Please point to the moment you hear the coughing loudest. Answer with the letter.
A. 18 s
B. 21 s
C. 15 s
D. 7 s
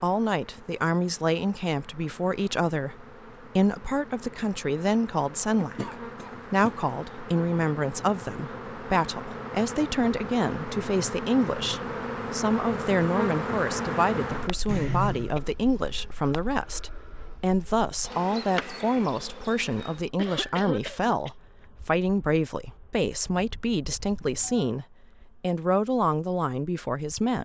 C.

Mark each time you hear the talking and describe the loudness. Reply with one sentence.
You can hear the talking from 0.0 to 27.4 s, at a steady volume.